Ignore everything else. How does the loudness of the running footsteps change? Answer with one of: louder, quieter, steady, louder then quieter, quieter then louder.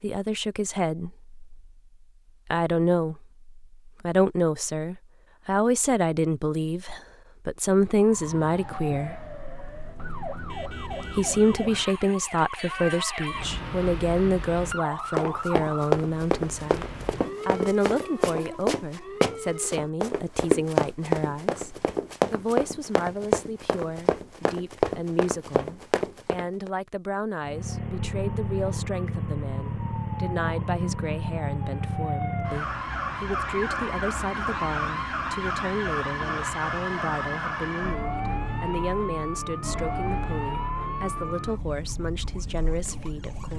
steady.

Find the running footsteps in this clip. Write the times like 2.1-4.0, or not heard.
15.2-26.7.